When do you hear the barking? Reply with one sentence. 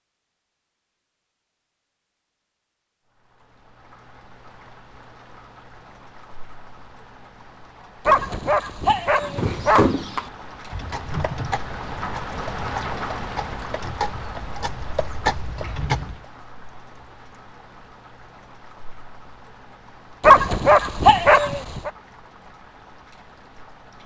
You can hear the barking from 8.1 to 9.9 s and from 20.2 to 21.9 s.